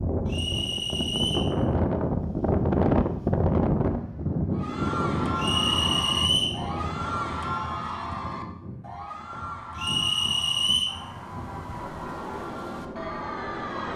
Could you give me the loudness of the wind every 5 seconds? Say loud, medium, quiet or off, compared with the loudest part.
loud, medium, quiet.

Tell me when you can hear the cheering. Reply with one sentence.
The cheering can be heard from 4.5 to 13.9 s.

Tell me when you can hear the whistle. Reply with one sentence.
You can hear the whistle from 0.2 to 1.5 s, from 5.3 to 6.5 s and from 9.8 to 10.9 s.